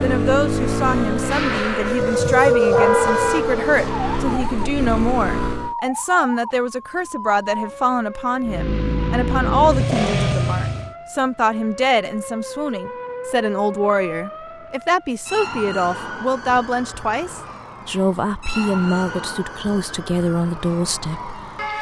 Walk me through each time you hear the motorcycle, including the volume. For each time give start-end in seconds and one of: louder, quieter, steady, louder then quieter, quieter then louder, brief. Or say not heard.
0.0-5.8 quieter then louder
8.4-10.9 brief.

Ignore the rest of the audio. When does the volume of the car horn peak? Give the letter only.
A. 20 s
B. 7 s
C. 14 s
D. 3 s
D.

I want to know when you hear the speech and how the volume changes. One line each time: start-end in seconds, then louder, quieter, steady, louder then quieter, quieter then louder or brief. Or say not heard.
0.0-21.7 steady.